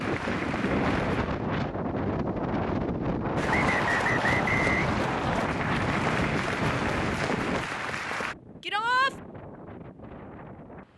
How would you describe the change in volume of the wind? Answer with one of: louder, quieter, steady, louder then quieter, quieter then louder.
quieter.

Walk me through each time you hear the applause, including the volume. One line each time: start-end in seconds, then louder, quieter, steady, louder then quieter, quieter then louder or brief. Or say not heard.
0.0-1.6 brief
3.4-8.3 steady.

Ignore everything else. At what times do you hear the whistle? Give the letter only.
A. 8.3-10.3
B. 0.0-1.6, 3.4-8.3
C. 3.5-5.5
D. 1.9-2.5
C.